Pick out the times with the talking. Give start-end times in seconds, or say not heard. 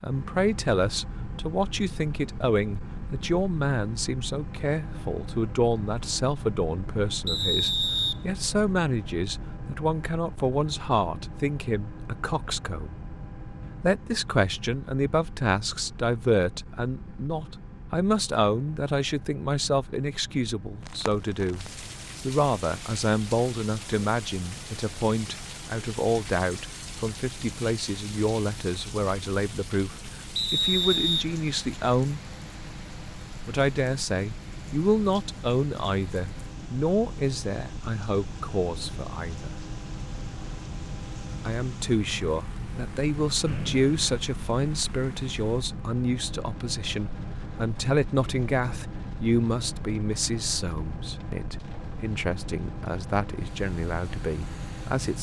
0.0-13.0, 13.8-32.2, 33.5-39.5, 41.5-55.1.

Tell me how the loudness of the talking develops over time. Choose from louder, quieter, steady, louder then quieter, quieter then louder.
steady.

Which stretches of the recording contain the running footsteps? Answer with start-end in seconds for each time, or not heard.
not heard.